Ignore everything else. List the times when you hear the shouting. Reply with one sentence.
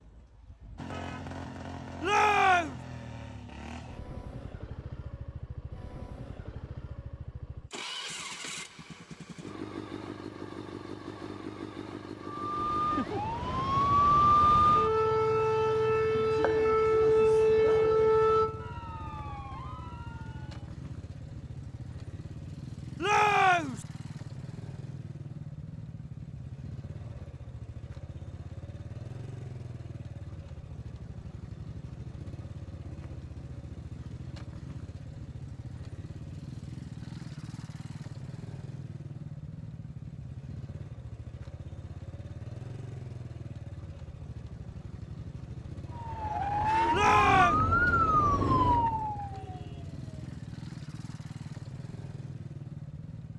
You can hear the shouting from 2.0 to 2.8 s, from 23.0 to 23.9 s and from 46.9 to 47.6 s.